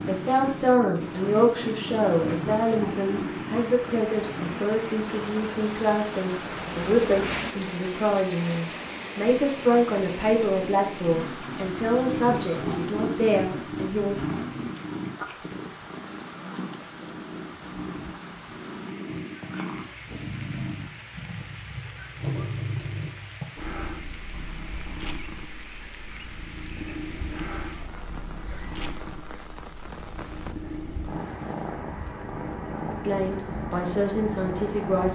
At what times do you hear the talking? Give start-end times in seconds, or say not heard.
0.0-14.2, 33.0-35.0.